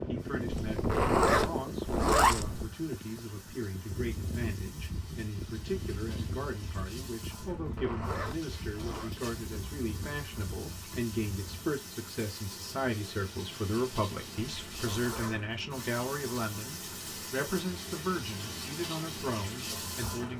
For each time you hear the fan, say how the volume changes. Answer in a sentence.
The fan can be heard from 0.0 to 11.8 s, getting quieter.